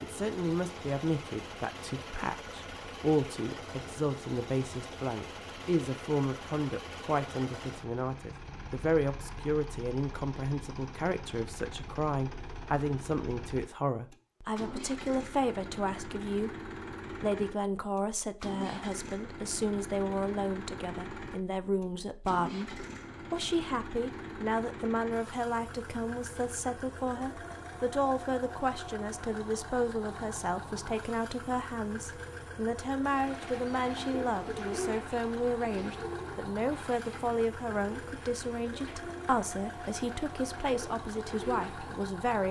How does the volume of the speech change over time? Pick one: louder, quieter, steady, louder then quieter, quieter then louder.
steady.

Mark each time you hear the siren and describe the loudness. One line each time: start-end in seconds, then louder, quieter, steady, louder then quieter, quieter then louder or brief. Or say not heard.
not heard.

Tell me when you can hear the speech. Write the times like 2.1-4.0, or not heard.
0.0-42.4.